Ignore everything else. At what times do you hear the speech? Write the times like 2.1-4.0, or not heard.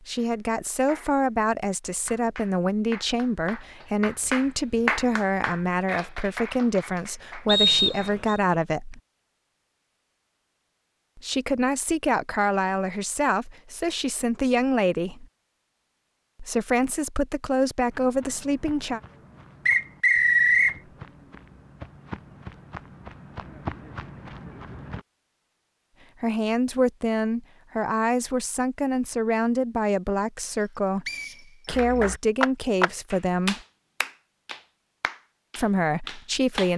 0.0-9.0, 11.2-15.2, 16.4-19.0, 26.2-33.6, 35.5-36.7.